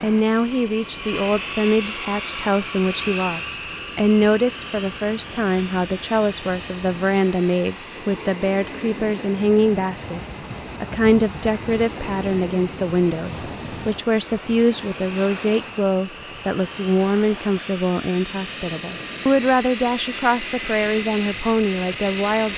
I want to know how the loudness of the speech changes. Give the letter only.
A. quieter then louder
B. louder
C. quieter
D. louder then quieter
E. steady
E.